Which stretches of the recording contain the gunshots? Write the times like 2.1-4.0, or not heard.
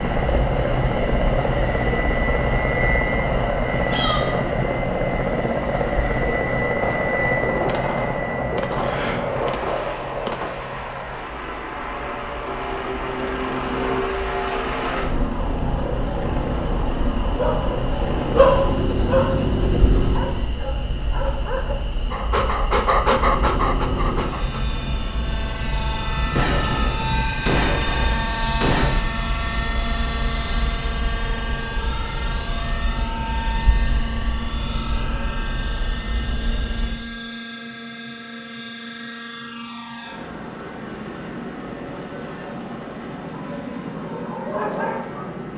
6.8-10.5, 26.4-28.9.